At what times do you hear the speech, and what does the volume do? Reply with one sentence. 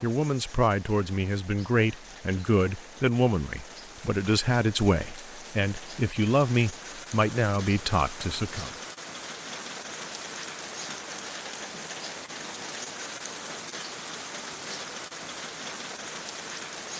You can hear the speech from 0.0 to 8.7 s, at a steady volume.